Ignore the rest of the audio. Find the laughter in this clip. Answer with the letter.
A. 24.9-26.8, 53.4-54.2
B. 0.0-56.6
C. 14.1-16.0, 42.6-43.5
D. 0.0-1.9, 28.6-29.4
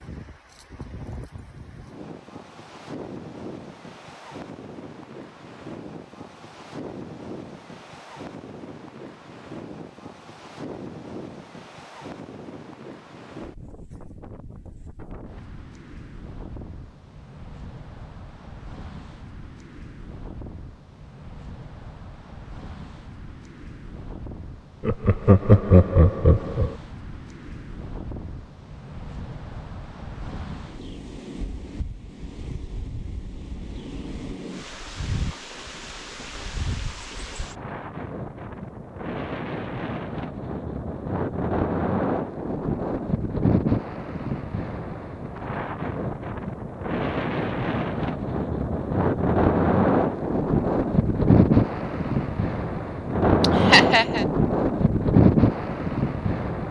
A.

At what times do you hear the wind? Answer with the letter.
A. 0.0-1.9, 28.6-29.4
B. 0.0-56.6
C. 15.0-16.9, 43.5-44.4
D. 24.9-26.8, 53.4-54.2
B.